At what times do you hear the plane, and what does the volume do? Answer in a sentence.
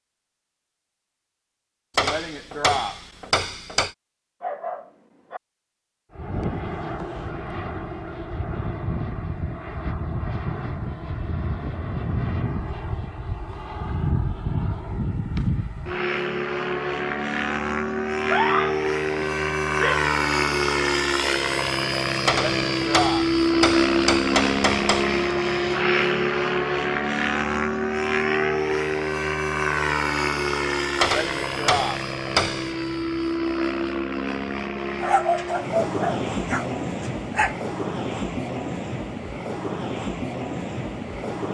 You can hear the plane from 6.1 to 41.4 s, getting louder then quieter.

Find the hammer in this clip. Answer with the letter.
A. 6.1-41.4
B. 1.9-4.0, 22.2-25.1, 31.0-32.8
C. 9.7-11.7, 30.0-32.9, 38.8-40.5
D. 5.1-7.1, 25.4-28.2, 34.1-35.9
B.